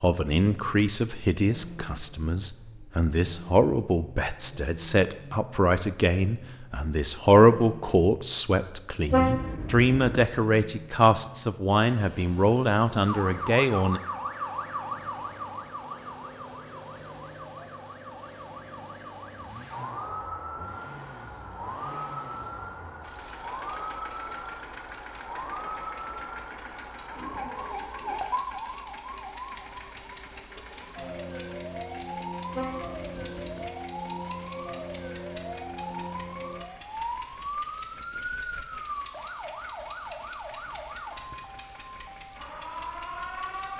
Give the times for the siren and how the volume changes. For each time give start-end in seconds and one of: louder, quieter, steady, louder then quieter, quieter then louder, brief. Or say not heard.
13.1-43.7 steady.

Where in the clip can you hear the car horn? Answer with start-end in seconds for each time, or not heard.
9.1-10.2, 32.5-33.7.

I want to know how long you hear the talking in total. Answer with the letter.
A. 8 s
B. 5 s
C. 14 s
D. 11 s
C.